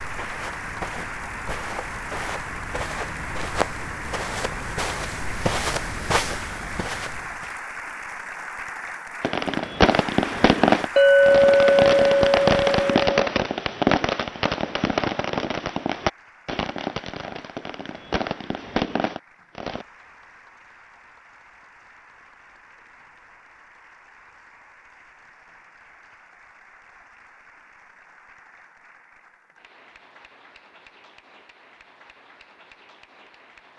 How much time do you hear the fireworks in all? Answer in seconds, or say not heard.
11 s.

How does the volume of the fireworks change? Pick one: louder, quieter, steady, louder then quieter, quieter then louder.
quieter.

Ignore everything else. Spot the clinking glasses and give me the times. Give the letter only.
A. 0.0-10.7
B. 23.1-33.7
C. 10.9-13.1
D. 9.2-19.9
C.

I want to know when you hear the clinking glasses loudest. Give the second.
11 s.